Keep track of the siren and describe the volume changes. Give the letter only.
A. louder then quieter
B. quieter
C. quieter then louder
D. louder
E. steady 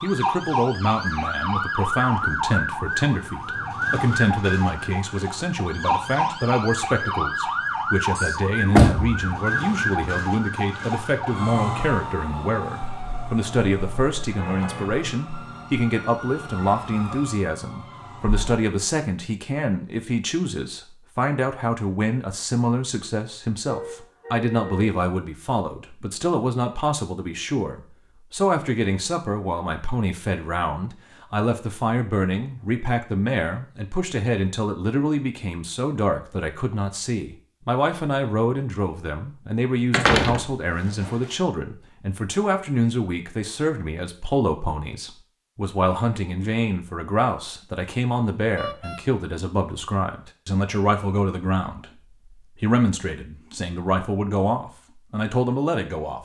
B.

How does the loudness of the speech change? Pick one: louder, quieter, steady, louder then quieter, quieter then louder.
steady.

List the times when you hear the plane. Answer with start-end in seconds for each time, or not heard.
not heard.